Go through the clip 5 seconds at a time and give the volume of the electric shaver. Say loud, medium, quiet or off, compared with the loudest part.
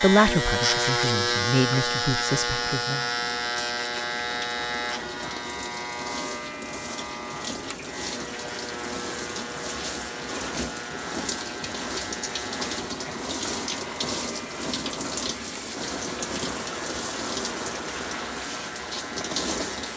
loud, medium, quiet, quiet.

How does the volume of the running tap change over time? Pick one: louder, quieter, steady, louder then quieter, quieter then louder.
louder.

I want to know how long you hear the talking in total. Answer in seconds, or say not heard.
3 s.